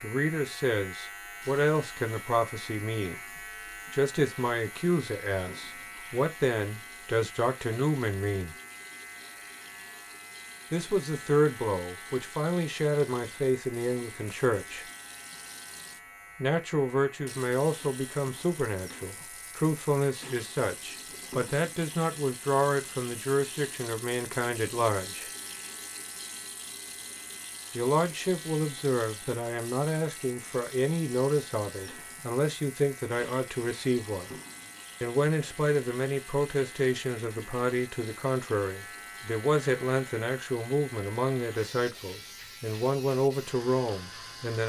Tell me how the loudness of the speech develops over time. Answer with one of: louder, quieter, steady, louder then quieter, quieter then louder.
steady.